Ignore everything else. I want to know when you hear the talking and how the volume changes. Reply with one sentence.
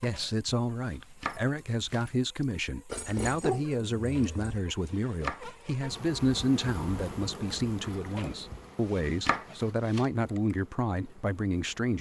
The talking can be heard from 0.0 to 11.9 s, at a steady volume.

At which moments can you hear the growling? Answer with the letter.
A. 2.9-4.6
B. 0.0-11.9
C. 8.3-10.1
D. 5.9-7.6
A.